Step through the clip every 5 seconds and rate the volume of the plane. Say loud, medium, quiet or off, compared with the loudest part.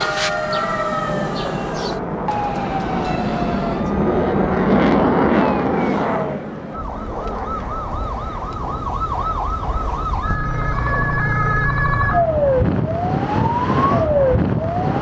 loud, loud, quiet.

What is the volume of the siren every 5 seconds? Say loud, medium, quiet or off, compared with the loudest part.
medium, medium, loud.